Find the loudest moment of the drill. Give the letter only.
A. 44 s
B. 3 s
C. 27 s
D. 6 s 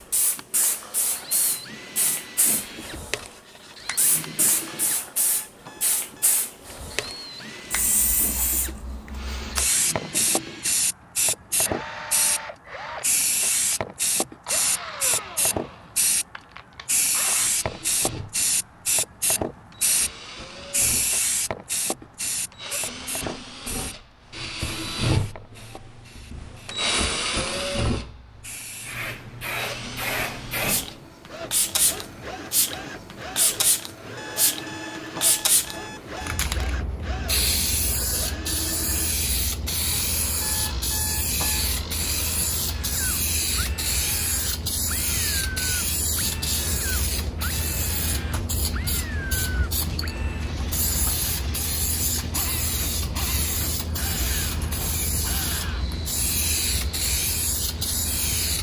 C.